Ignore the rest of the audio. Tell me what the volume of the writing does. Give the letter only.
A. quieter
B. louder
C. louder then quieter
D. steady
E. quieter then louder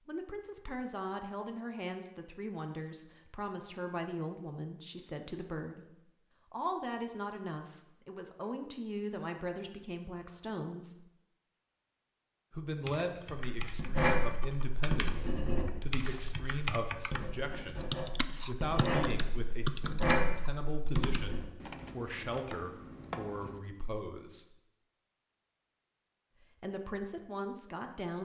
E.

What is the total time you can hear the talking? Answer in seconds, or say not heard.
25 s.